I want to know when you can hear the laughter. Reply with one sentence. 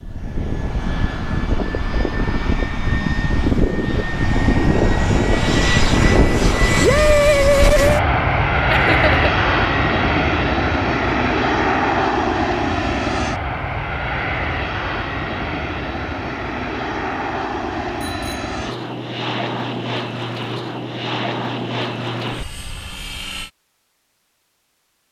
You can hear the laughter from 8.7 to 9.3 s.